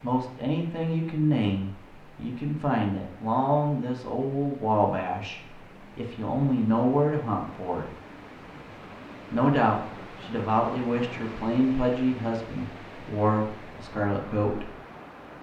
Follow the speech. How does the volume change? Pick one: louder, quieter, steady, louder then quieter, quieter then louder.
steady.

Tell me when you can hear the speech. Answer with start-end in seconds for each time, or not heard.
0.0-7.9, 9.3-14.7.